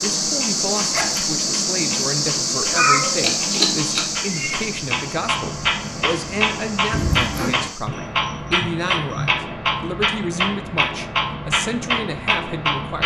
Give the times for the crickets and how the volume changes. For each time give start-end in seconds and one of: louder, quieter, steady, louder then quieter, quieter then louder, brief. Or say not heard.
0.0-9.3 quieter.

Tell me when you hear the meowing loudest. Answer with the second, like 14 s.
3 s.